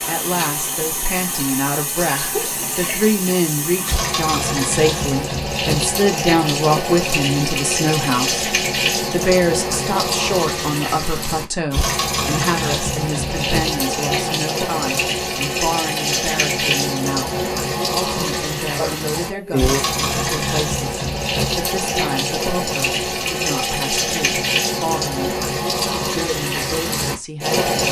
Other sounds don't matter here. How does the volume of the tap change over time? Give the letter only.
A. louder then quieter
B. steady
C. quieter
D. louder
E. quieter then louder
B.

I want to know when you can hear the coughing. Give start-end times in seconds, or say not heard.
18.8-19.9.